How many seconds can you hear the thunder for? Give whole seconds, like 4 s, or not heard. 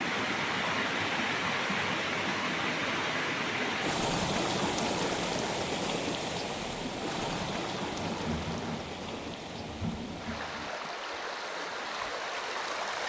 3 s.